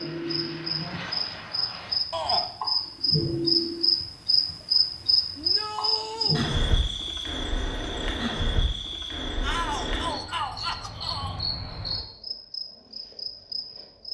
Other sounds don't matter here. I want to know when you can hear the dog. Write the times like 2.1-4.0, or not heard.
not heard.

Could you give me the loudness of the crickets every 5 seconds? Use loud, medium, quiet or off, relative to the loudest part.
loud, loud, medium.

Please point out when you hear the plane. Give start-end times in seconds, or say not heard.
0.0-2.0.